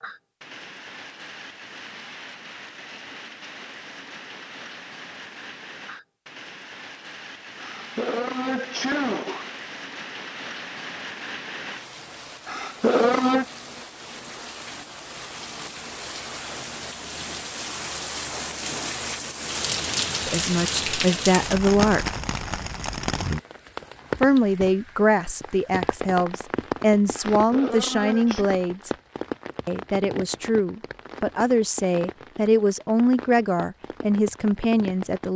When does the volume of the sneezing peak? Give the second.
13 s.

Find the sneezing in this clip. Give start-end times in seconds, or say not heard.
7.6-9.4, 12.4-13.4, 27.1-28.5.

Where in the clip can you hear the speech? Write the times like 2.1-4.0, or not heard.
20.2-22.1, 24.2-28.9, 29.6-35.3.